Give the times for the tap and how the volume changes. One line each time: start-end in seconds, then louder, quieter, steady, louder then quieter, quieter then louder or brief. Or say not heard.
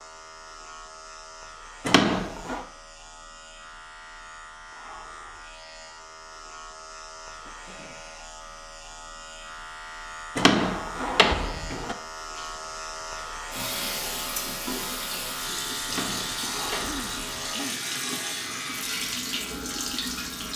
12.3-20.5 steady.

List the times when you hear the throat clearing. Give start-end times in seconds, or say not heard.
7.4-8.1, 16.8-17.8.